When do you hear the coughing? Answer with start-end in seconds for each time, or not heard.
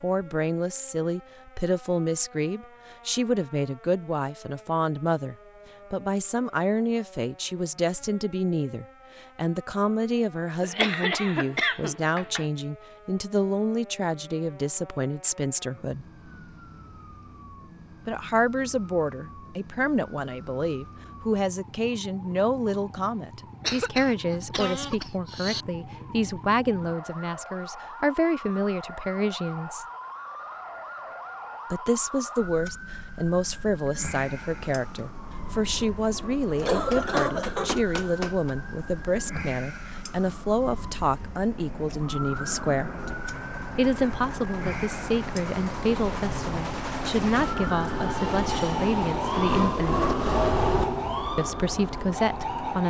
10.6-12.4, 23.6-25.6, 36.6-38.5.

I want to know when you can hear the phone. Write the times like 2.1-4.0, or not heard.
not heard.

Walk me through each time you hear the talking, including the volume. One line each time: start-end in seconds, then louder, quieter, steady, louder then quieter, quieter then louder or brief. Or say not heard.
0.0-16.1 steady
18.1-29.9 steady
31.7-42.9 steady
43.8-50.0 steady
51.4-52.8 brief.